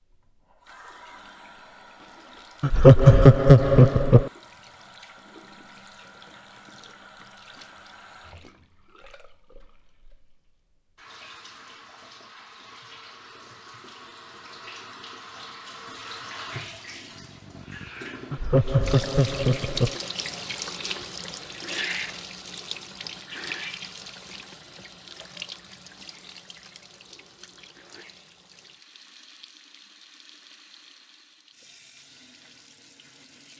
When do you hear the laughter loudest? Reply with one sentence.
The volume of the laughter peaks at 3 seconds.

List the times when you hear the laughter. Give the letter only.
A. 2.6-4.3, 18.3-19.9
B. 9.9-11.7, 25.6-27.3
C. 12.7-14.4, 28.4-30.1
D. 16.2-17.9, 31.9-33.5
A.